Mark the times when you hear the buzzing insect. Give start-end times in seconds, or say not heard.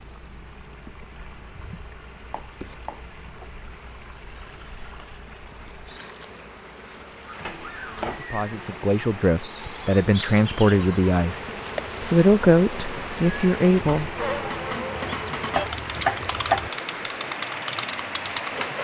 0.0-18.7.